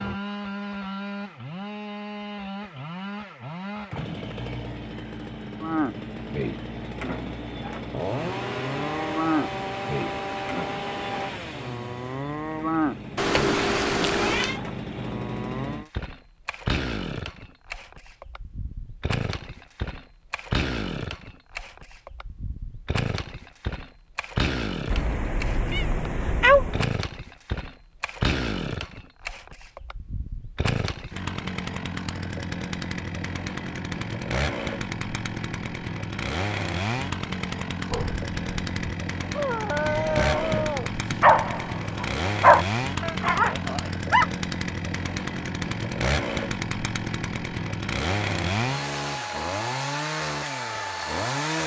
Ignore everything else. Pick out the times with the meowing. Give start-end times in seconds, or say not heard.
13.2-14.6, 24.9-26.9, 39.9-41.3.